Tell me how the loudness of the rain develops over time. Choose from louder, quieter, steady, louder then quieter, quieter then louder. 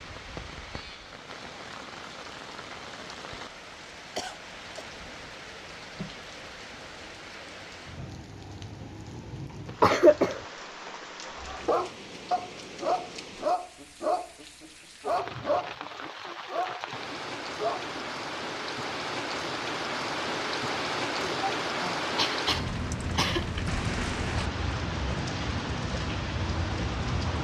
louder.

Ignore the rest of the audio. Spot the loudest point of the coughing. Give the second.
10 s.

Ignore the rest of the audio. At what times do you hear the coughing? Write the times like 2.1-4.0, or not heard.
4.2-4.8, 9.7-10.4, 21.2-23.5.